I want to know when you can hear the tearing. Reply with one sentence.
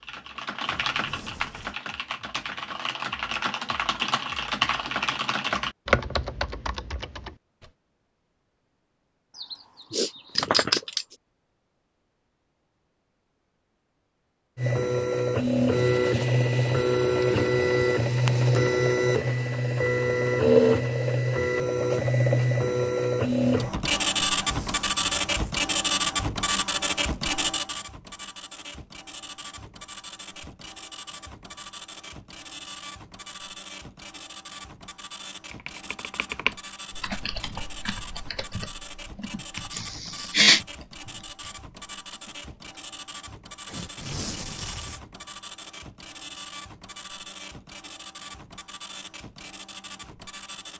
The tearing can be heard from 0.7 to 1.8 s, from 24.3 to 25.7 s and from 43.6 to 45.0 s.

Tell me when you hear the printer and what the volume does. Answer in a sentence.
The printer can be heard from 14.6 to 50.7 s, getting quieter.